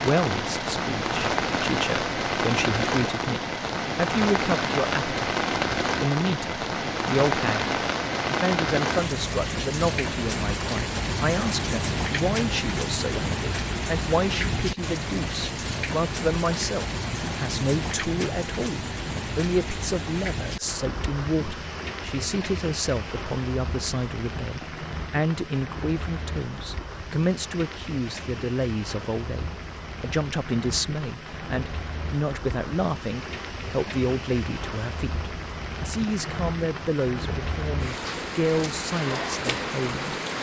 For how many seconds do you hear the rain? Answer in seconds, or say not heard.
40 s.